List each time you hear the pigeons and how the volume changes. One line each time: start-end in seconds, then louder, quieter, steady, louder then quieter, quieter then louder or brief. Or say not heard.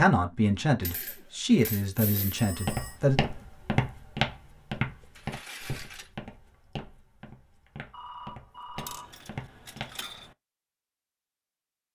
not heard.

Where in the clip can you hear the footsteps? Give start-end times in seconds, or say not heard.
2.5-10.1.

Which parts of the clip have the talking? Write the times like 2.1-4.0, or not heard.
0.0-3.2.